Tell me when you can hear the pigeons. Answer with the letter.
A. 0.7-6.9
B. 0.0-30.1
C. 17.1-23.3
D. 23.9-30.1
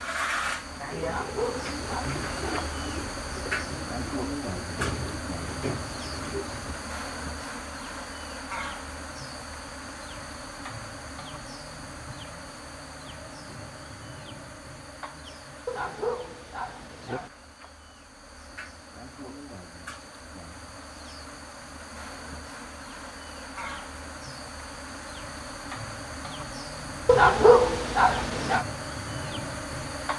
A.